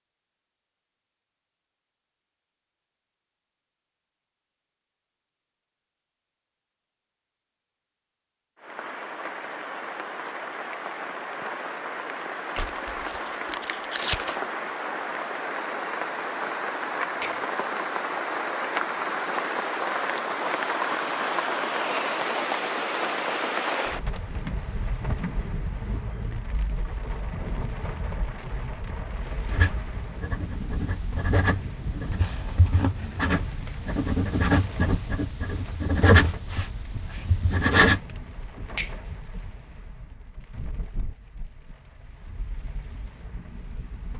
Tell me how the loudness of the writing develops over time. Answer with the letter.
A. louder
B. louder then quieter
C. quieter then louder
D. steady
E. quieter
A.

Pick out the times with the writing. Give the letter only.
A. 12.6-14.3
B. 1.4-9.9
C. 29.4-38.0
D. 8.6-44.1
C.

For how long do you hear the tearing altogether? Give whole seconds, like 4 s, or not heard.
2 s.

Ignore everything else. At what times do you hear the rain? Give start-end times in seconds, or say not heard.
8.6-44.1.